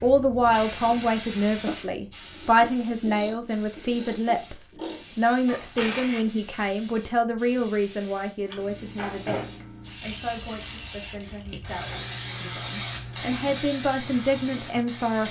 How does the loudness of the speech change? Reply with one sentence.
The volume of the speech goes down, then up.